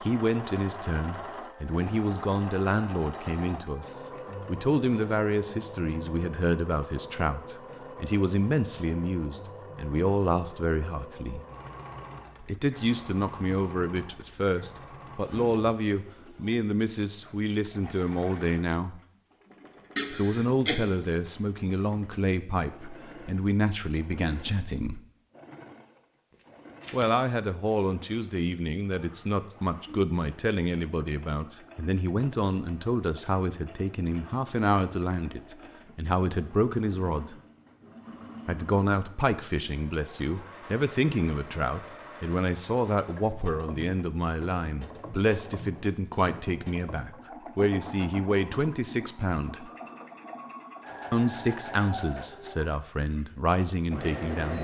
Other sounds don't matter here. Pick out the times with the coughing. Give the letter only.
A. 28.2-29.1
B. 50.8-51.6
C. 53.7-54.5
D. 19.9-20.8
D.